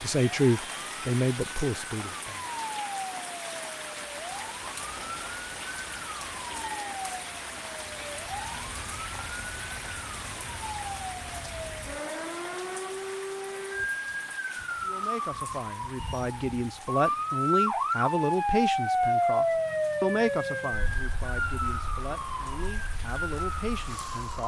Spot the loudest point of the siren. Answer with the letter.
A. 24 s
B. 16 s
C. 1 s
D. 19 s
D.